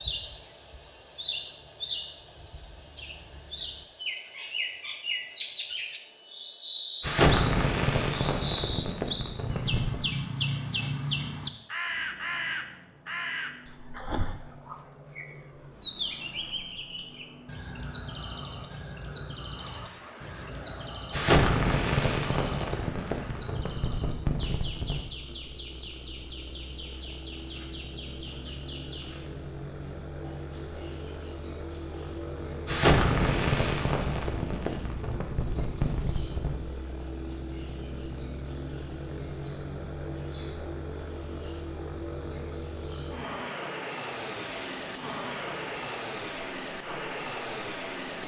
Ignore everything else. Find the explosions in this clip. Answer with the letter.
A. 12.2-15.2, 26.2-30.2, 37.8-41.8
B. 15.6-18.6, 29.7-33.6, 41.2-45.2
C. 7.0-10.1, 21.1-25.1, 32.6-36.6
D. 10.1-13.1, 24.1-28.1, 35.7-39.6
C.